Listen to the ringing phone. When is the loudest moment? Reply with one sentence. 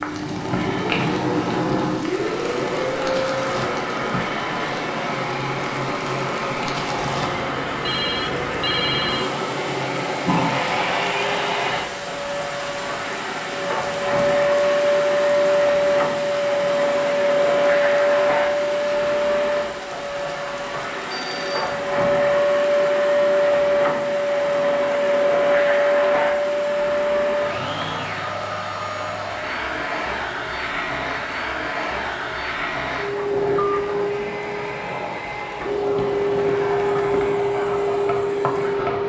The volume of the ringing phone peaks at 9 seconds.